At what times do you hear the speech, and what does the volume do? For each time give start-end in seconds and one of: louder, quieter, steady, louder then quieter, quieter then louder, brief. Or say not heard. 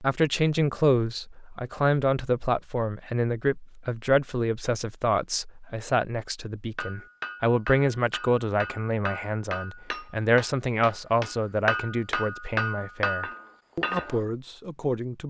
0.0-15.2 quieter.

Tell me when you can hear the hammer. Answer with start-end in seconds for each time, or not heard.
6.8-14.2.